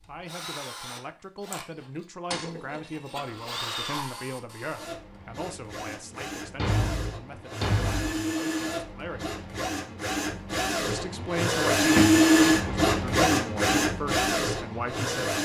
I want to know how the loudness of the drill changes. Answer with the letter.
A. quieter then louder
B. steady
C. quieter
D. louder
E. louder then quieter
D.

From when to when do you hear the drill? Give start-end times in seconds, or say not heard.
0.0-15.4.